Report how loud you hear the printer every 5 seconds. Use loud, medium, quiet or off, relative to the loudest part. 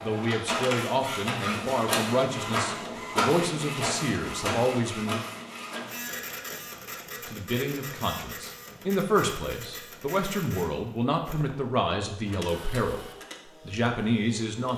loud, medium, quiet.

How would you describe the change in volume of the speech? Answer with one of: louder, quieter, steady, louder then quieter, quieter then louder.
steady.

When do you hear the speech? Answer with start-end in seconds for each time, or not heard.
0.0-5.2, 7.2-14.7.